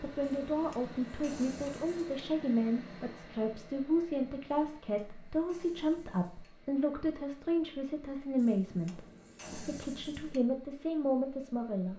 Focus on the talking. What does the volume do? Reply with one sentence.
The loudness of the talking stays about the same.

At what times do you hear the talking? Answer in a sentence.
You can hear the talking from 0.0 to 11.9 s.